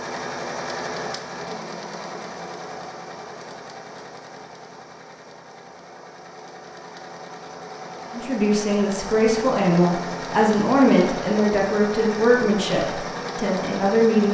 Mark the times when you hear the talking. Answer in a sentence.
You can hear the talking from 8.1 to 14.2 s.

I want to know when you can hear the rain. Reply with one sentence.
You can't hear the rain here.